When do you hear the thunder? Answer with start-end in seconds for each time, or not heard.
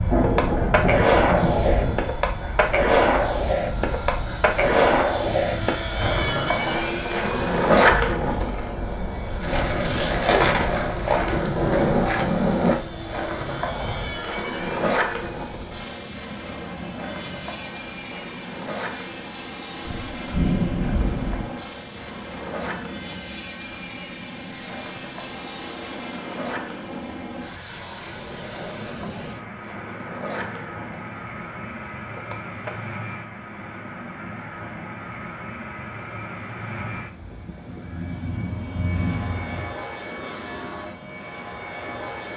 0.1-2.0, 19.9-21.5, 37.0-39.8.